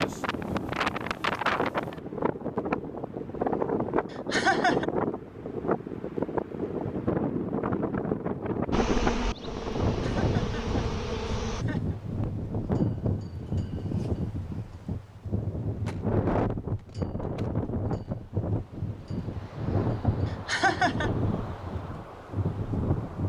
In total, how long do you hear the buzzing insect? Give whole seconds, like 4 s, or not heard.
3 s.